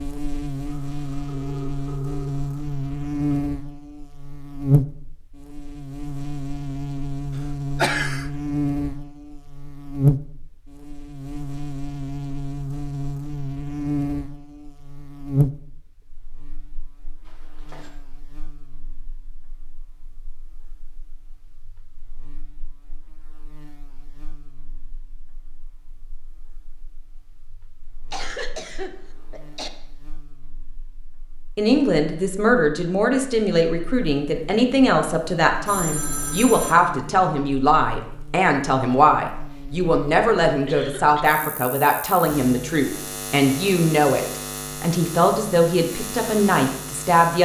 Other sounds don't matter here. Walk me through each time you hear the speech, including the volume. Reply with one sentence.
You can hear the speech from 31.6 to 47.3 s, at a steady volume.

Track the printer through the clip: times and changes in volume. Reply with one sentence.
The printer can't be heard in this clip.